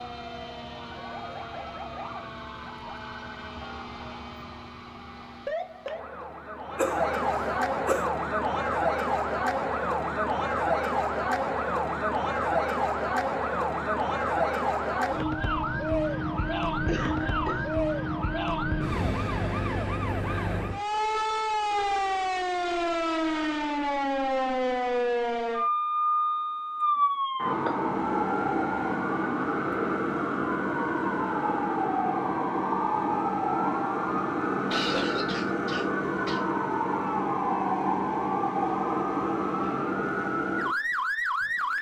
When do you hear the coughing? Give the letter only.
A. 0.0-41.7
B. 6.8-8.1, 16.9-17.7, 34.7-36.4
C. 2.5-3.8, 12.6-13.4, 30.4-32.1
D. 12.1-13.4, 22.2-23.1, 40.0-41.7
B.